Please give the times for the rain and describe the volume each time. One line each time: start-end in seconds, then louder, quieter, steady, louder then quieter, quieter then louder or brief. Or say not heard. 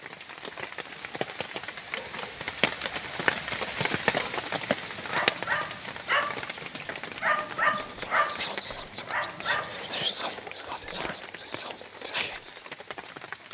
0.0-13.5 louder then quieter.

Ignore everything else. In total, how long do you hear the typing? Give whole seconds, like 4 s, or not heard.
not heard.